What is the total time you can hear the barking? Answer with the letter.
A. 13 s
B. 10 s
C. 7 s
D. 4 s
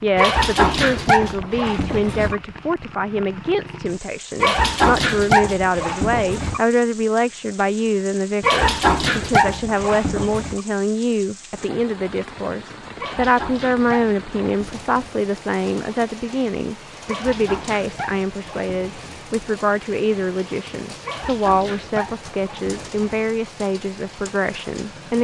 A.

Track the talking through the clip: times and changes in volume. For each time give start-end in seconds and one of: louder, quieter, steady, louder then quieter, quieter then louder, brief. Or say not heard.
0.0-25.1 steady.